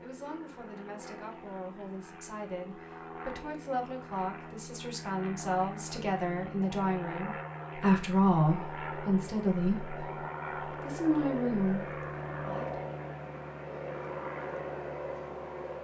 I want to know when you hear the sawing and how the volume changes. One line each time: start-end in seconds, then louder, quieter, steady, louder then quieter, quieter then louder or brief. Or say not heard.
not heard.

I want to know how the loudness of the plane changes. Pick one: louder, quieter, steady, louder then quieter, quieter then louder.
louder.